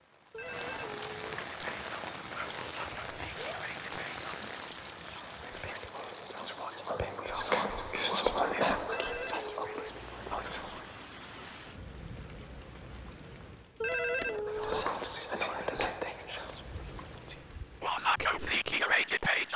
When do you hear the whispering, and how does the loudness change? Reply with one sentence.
You can hear the whispering from 1.4 to 10.9 s, getting louder then quieter; and from 14.4 to 19.5 s, getting quieter then louder.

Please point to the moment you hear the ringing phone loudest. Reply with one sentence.
The volume of the ringing phone peaks at 14 seconds.